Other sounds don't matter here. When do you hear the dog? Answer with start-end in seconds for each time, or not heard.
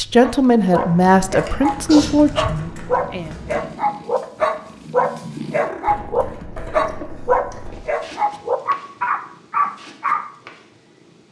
0.2-10.2.